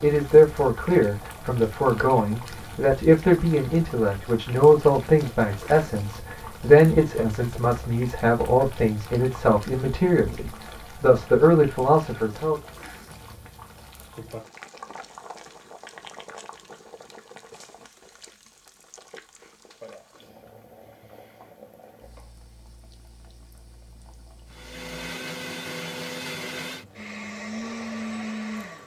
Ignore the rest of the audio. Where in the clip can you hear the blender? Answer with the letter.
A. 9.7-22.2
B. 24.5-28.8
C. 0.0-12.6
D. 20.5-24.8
B.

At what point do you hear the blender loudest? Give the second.
28 s.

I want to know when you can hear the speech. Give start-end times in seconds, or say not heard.
0.0-12.6.